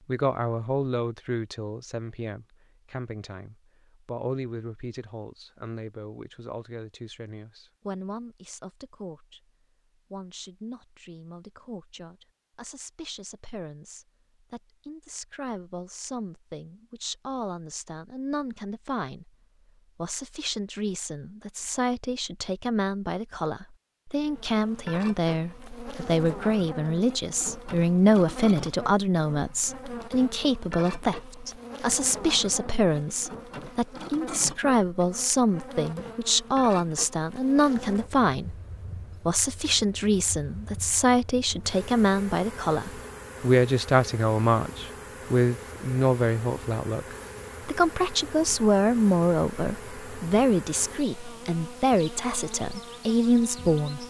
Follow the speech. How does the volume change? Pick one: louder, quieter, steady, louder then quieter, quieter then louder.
louder.